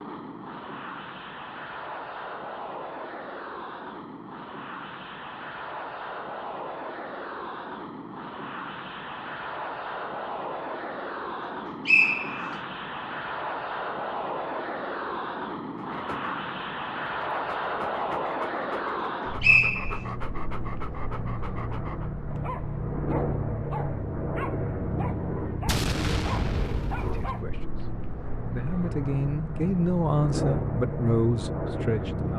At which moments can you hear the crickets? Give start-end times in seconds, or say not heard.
not heard.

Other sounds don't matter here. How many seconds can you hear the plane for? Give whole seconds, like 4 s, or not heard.
32 s.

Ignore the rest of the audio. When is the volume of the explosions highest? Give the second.
26 s.